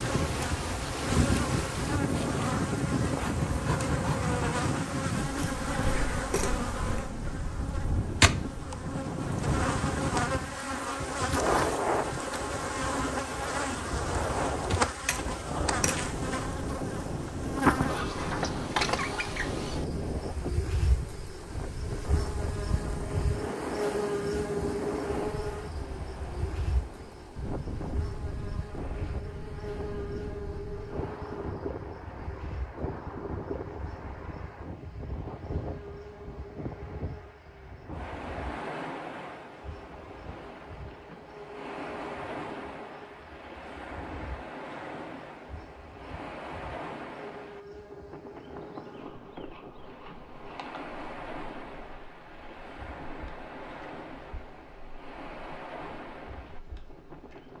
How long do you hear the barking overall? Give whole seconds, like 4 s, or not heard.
not heard.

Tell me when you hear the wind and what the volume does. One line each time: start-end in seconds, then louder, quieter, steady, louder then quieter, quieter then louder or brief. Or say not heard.
0.0-57.5 quieter.